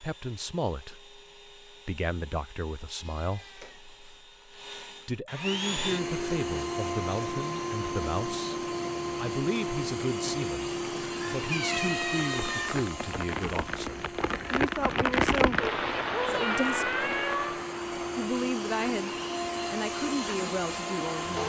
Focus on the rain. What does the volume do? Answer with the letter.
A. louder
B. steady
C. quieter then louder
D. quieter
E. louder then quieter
E.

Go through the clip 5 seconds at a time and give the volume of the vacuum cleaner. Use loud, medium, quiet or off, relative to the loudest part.
quiet, loud, loud, loud, loud.